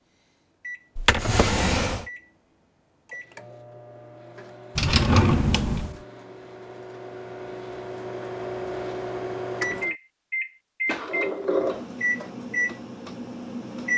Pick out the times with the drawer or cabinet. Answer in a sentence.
The drawer or cabinet can be heard from 0.9 to 2.0 s, from 4.8 to 6.0 s and from 10.8 to 12.3 s.